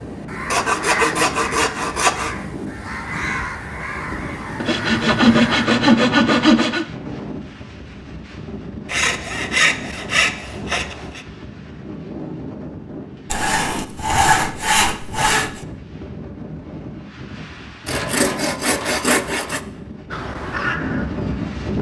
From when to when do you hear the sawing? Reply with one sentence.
You can hear the sawing from 0.5 to 2.4 s, from 4.6 to 6.8 s, from 8.8 to 11.2 s, from 13.3 to 15.6 s and from 17.9 to 19.6 s.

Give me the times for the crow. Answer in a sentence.
You can hear the crow from 0.0 to 5.7 s and from 20.1 to 21.6 s.